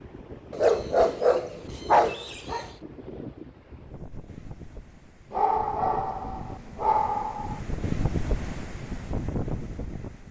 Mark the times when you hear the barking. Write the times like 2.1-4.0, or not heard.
0.5-2.7, 5.3-7.6.